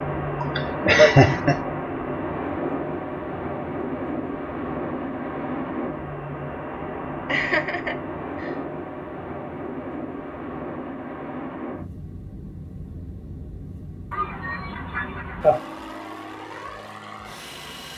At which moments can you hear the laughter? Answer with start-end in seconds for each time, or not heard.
0.4-1.6, 7.2-8.6, 14.1-15.6.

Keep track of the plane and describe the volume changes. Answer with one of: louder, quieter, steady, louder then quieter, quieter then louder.
quieter.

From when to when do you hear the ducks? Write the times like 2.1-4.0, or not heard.
not heard.